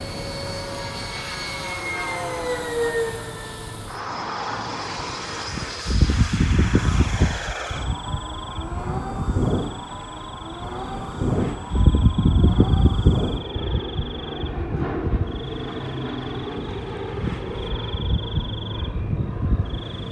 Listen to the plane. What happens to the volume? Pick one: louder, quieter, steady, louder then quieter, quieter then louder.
steady.